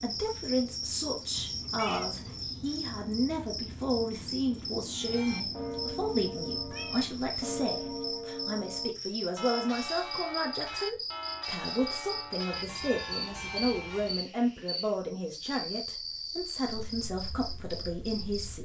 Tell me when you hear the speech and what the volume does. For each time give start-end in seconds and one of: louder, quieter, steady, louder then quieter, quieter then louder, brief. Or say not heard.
0.0-18.6 steady.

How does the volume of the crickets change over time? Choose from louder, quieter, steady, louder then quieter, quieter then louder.
steady.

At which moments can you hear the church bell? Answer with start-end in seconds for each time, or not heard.
4.9-14.2.